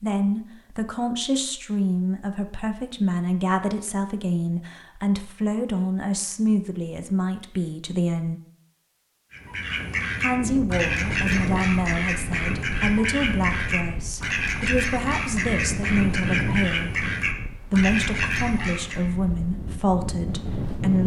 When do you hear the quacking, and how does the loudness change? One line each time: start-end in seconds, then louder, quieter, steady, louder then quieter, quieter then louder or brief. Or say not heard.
9.3-19.1 steady.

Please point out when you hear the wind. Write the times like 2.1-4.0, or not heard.
10.2-21.0.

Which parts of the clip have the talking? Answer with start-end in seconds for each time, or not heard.
0.0-8.4, 10.2-16.9, 17.7-21.0.